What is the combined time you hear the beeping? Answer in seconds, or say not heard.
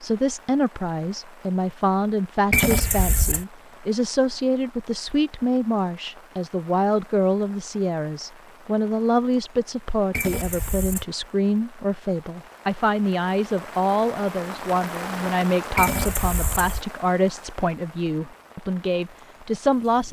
3 s.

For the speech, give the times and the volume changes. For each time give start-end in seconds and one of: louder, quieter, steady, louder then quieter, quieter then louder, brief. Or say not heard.
0.0-20.0 steady.